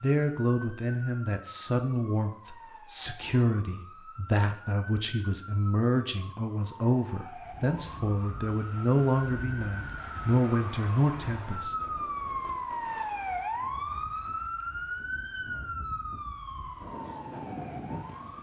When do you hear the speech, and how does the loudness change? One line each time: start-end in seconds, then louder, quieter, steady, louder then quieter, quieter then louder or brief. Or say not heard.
0.0-11.8 steady.